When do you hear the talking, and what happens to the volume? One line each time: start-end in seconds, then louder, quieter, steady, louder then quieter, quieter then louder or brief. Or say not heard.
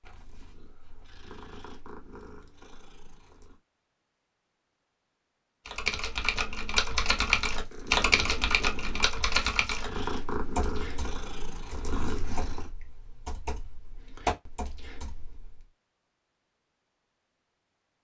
not heard.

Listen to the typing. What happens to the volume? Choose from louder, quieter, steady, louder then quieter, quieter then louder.
quieter then louder.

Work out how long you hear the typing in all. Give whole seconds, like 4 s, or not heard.
10 s.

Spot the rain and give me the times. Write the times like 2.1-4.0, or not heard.
not heard.